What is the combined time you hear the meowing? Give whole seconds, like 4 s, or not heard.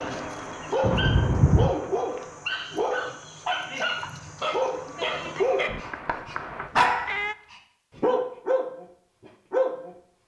3 s.